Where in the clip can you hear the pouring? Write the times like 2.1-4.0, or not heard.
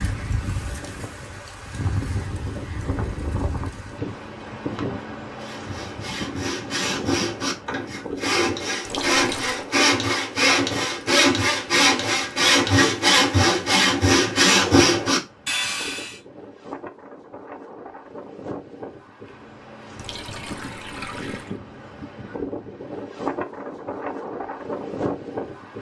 8.8-9.6, 19.9-21.6.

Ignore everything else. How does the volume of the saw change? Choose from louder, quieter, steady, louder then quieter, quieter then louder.
louder.